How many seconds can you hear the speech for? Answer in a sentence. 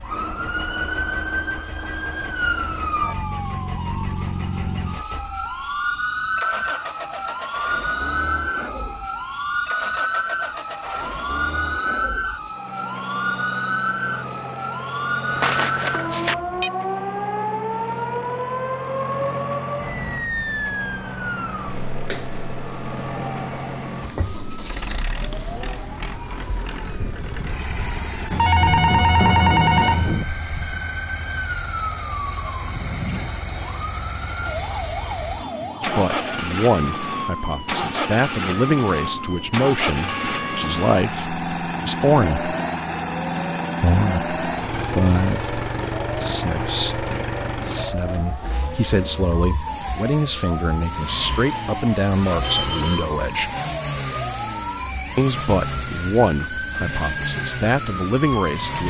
You can hear the speech for 20 seconds altogether.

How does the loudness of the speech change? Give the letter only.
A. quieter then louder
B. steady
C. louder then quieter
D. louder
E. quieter
B.